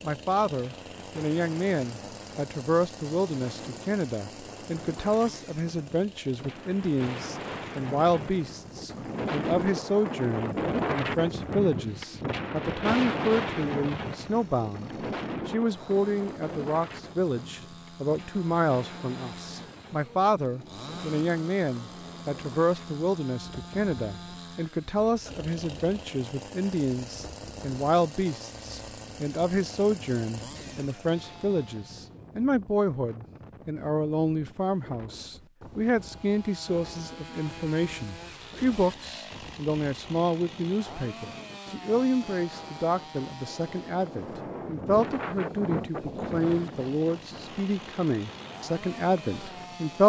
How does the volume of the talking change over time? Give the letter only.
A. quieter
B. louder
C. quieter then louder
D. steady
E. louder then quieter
D.